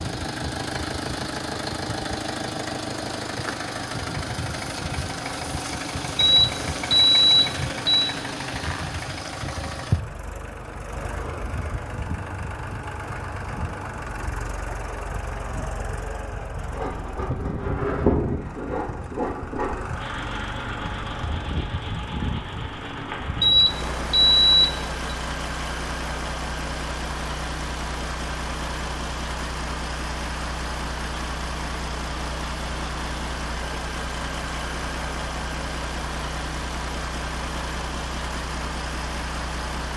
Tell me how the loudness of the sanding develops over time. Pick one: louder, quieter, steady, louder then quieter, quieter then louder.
quieter.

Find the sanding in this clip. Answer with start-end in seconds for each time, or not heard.
16.7-23.7.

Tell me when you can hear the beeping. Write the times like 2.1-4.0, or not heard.
6.2-8.1, 23.4-25.1.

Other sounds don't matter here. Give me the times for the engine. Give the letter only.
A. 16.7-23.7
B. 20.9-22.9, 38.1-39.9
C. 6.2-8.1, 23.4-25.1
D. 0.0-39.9
D.